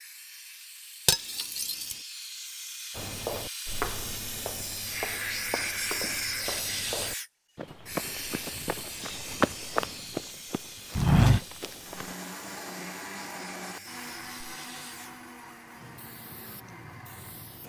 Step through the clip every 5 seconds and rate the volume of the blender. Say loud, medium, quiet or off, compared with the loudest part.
off, off, loud, medium.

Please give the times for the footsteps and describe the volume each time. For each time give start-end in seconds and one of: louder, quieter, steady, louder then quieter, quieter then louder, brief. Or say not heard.
3.0-12.1 louder.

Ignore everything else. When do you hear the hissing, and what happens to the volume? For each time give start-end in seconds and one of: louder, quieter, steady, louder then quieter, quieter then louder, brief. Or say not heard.
0.0-17.6 louder then quieter.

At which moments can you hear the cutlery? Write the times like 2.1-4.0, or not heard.
1.1-1.9.